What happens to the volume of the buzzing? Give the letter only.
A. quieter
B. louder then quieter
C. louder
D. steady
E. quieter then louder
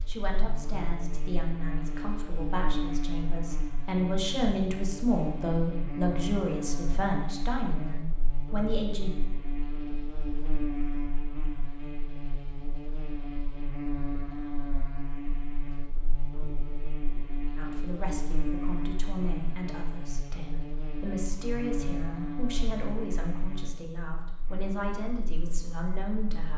D.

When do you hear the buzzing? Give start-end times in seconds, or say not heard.
0.0-26.5.